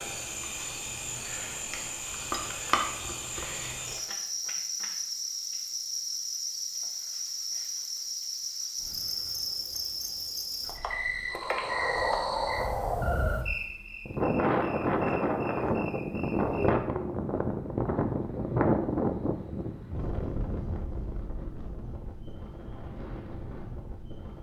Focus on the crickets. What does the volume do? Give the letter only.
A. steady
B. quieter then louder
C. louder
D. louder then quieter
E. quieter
E.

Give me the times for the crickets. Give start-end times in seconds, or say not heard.
0.0-16.7.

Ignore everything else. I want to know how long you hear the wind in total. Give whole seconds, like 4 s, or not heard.
13 s.